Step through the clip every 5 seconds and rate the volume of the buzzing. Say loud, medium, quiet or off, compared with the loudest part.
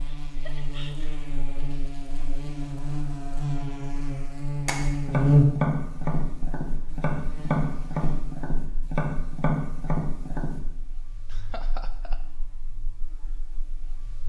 medium, loud, quiet.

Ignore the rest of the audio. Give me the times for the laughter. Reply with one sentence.
The laughter can be heard from 0.1 to 1.2 s and from 11.2 to 12.2 s.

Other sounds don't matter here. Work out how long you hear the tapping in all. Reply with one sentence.
The tapping can be heard for 6 seconds in total.